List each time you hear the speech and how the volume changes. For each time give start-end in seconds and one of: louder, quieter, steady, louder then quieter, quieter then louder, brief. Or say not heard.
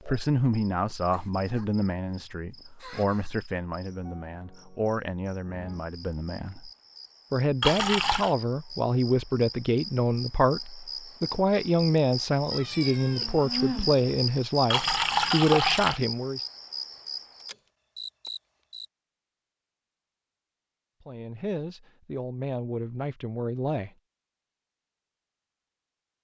0.1-6.7 quieter
7.3-16.4 steady
21.1-23.9 brief.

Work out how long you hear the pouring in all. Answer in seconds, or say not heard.
2 s.